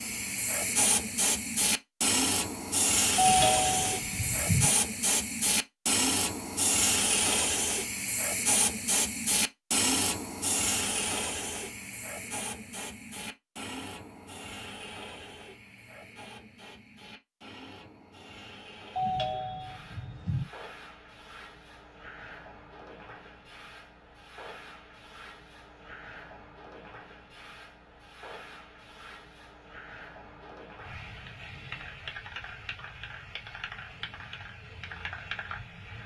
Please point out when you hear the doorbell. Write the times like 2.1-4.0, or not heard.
3.1-4.7, 18.9-20.4.